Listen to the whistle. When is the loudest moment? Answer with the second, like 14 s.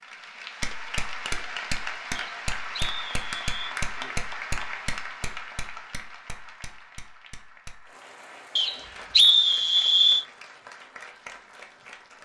9 s.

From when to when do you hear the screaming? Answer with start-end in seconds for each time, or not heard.
not heard.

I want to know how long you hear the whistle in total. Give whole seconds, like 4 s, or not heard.
3 s.